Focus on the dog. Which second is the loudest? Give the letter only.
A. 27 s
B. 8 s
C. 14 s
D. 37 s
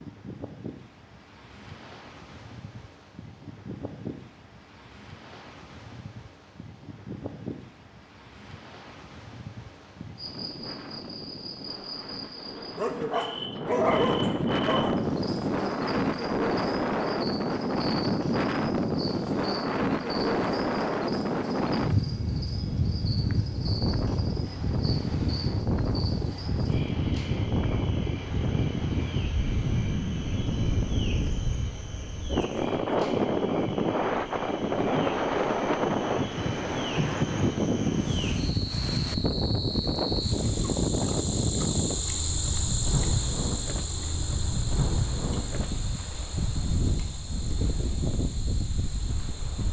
C.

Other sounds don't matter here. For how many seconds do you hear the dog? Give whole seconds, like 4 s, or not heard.
2 s.